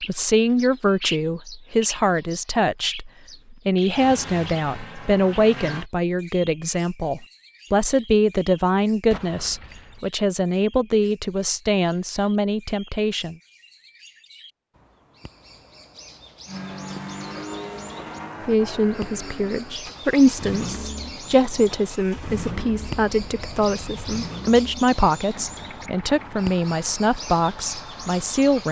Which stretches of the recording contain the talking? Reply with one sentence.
The talking can be heard from 0.0 to 13.3 s and from 18.4 to 28.6 s.